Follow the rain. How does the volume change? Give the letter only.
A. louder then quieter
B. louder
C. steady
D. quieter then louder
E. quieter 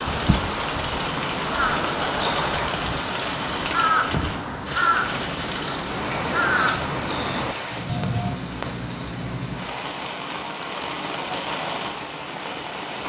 C.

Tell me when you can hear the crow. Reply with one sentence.
The crow can be heard from 0.0 to 8.4 s.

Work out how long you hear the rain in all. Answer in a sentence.
You can hear the rain for 13 seconds altogether.